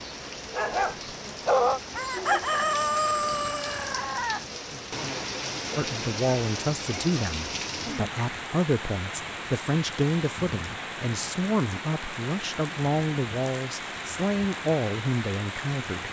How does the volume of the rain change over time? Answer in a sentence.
The volume of the rain stays about the same.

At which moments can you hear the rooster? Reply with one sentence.
The rooster can be heard from 1.9 to 5.1 s.